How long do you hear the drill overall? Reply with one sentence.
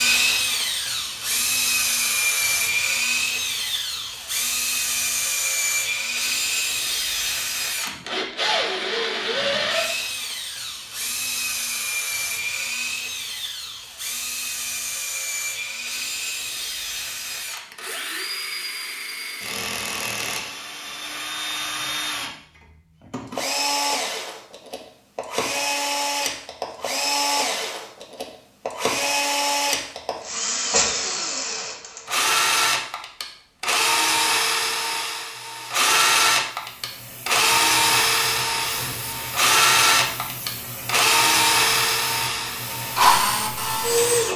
You can hear the drill for 44 seconds altogether.